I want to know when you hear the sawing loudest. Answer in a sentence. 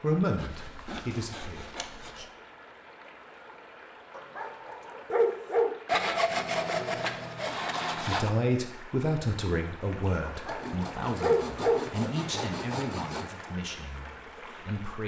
The loudest moment of the sawing is at 6 seconds.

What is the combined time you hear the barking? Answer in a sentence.
You can hear the barking for 3 seconds altogether.